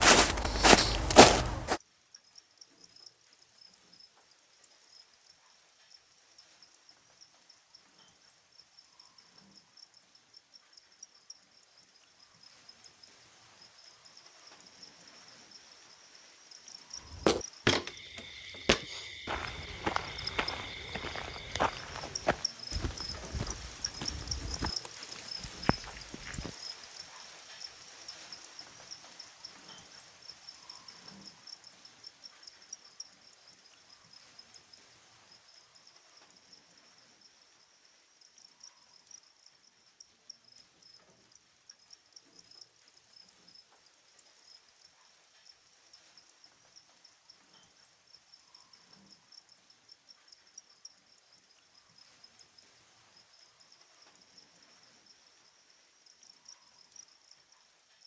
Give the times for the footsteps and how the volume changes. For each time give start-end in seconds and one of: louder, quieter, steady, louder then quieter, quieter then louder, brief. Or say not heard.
0.0-1.8 brief
17.1-26.5 quieter.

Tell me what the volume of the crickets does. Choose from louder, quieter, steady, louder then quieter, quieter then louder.
louder then quieter.